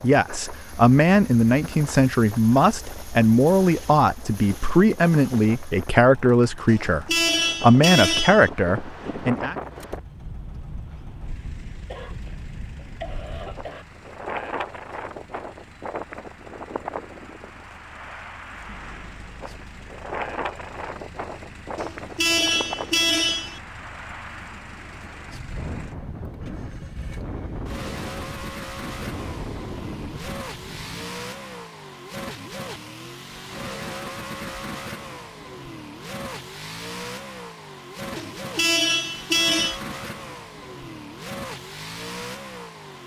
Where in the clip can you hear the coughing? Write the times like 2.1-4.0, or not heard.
11.8-13.8.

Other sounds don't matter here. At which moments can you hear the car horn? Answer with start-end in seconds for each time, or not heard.
6.7-8.5, 21.8-23.6, 38.1-39.8.